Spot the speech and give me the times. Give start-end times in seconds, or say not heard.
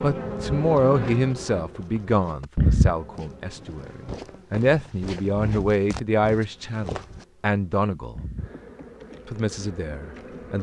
0.0-8.2, 9.2-10.5.